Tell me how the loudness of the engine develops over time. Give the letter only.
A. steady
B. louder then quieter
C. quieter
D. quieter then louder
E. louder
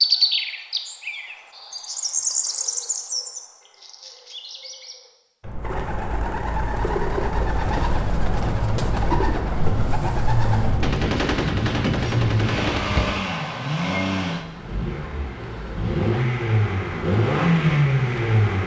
E.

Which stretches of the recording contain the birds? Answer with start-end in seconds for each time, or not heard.
0.0-10.9.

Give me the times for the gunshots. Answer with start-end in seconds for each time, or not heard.
10.7-13.2.